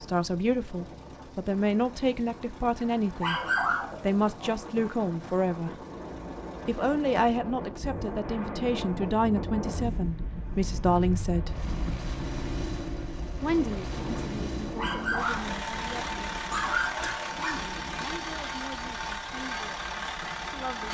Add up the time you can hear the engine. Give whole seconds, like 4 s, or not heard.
21 s.